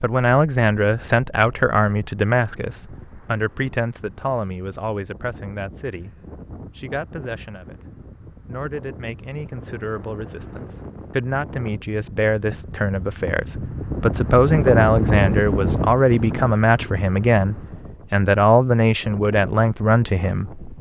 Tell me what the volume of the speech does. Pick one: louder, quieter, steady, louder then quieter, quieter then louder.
quieter then louder.